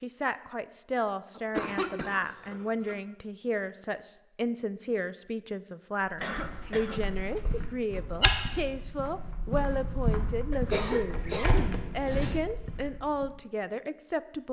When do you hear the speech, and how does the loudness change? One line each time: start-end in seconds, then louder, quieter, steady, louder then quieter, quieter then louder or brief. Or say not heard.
0.0-14.4 steady.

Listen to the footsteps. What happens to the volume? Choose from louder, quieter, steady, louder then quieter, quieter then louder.
louder then quieter.